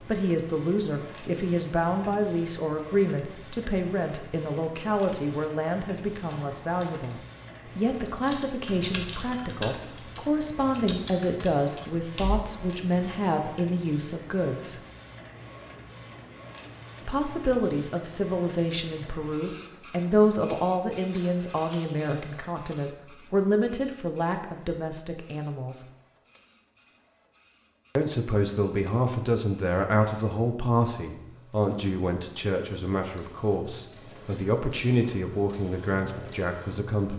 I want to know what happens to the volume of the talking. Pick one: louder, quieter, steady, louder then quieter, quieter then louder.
steady.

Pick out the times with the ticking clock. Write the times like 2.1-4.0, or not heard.
not heard.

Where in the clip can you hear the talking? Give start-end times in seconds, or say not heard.
0.0-14.8, 17.0-25.9, 27.9-37.1.